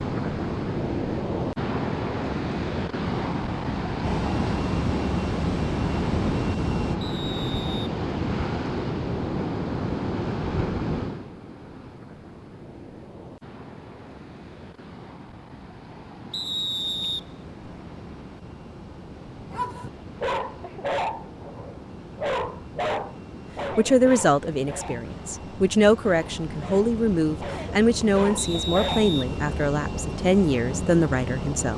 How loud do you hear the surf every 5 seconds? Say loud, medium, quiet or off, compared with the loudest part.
loud, loud, medium, quiet, quiet, quiet, off.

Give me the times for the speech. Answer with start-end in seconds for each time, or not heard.
23.8-31.7.